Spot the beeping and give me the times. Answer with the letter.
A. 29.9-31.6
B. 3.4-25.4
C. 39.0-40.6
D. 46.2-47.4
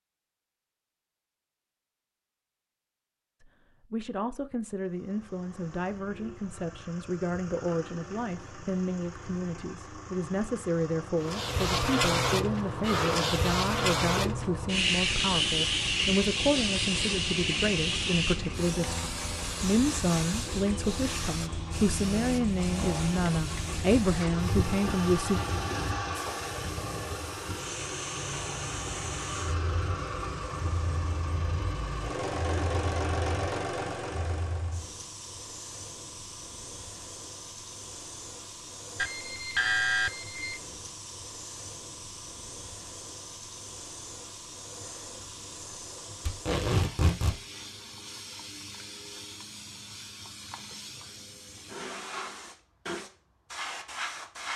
C.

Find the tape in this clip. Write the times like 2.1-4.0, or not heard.
46.2-47.4.